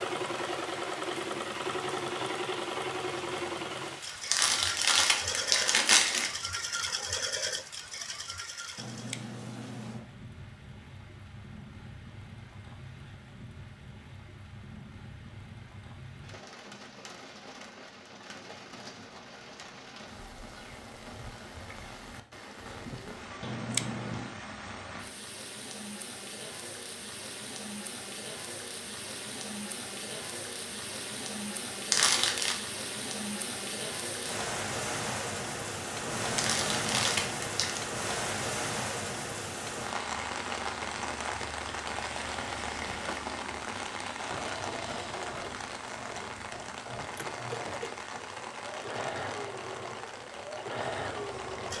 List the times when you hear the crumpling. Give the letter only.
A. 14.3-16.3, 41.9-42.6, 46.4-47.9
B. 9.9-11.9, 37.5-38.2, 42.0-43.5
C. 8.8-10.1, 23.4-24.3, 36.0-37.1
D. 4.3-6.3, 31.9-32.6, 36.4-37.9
D.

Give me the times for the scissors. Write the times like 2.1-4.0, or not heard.
8.8-10.1, 23.4-24.3, 36.0-37.1.